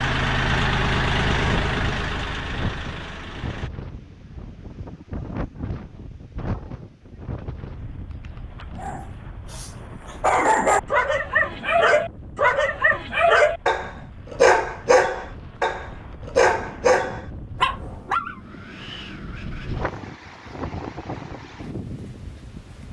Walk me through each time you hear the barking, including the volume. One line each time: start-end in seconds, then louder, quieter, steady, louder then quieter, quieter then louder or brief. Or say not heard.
8.8-18.4 steady.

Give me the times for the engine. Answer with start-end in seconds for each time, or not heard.
0.0-3.7.